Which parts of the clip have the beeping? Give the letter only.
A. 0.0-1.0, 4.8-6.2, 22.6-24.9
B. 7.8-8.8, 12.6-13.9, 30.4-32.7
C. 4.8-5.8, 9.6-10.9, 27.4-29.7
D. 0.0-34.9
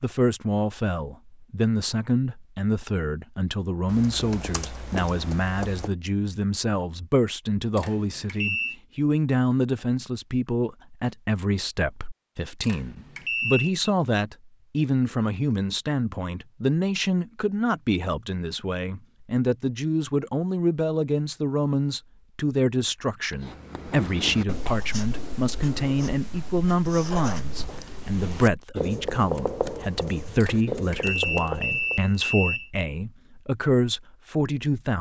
B.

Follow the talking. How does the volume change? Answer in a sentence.
The loudness of the talking stays about the same.